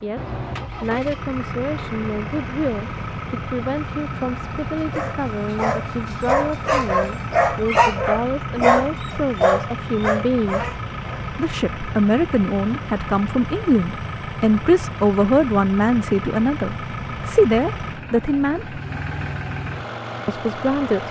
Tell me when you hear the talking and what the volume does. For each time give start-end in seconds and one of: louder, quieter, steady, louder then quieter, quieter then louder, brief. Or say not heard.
0.0-18.8 louder
20.2-21.0 brief.